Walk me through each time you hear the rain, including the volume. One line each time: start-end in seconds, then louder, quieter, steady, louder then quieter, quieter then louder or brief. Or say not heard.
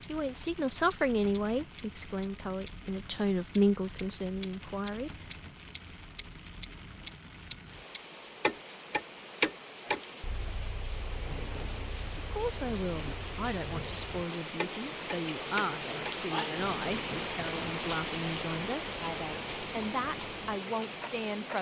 0.0-21.5 louder.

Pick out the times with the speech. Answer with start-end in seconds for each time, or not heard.
0.1-5.3, 12.2-21.5.